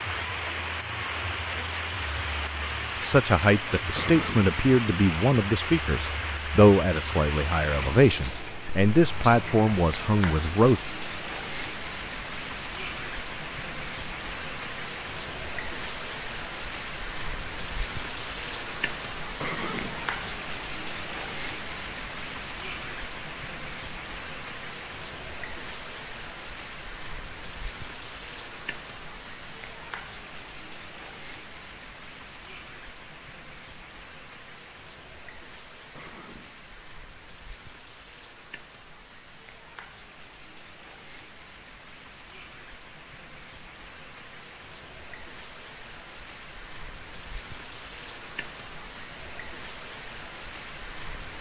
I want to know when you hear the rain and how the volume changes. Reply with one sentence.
You can hear the rain from 0.0 to 51.3 s, getting quieter.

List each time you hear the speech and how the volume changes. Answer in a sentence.
The speech can be heard from 3.0 to 10.8 s, at a steady volume.